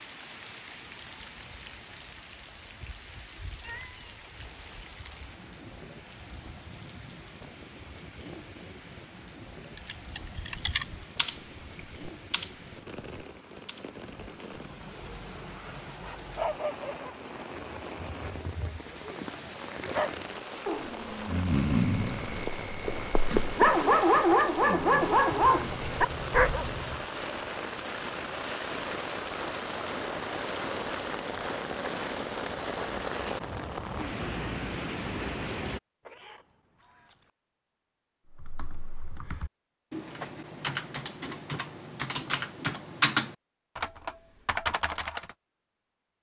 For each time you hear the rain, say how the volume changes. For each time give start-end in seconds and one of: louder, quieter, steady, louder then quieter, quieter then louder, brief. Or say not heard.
0.0-35.8 louder.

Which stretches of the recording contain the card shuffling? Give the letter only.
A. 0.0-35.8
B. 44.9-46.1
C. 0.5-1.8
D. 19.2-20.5
D.